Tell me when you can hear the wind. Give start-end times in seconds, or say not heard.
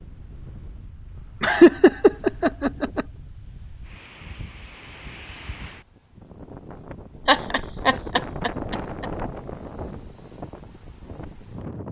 0.0-11.8.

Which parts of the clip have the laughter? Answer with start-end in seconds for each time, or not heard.
1.4-3.0, 7.2-9.1.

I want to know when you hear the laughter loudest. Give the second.
2 s.